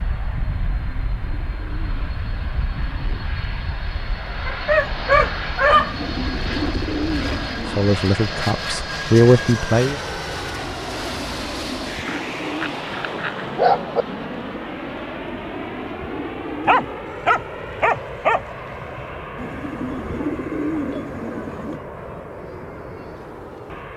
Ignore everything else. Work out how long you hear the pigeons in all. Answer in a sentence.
The pigeons can be heard for 10 seconds in total.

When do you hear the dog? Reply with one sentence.
The dog can be heard from 4.5 to 6.1 s, from 12.1 to 14.1 s and from 16.6 to 18.4 s.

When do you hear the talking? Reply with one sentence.
You can hear the talking from 7.7 to 9.9 s.